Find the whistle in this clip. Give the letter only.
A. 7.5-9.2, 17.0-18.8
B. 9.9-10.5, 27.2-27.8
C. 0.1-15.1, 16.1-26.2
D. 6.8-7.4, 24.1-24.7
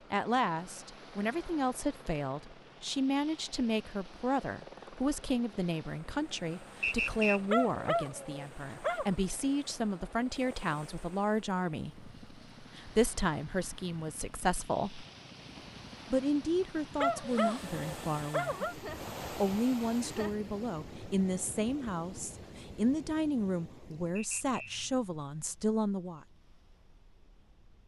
D.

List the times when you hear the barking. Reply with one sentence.
You can hear the barking from 7.5 to 9.2 s and from 17.0 to 18.8 s.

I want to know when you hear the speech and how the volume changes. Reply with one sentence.
You can hear the speech from 0.1 to 15.1 s, at a steady volume; and from 16.1 to 26.2 s, at a steady volume.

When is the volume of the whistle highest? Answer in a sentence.
The volume of the whistle peaks at 7 seconds.